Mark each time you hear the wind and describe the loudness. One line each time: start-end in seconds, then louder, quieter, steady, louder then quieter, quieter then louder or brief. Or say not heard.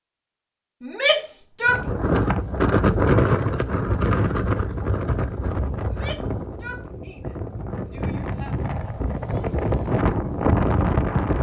1.6-11.3 quieter then louder.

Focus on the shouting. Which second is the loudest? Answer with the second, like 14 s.
1 s.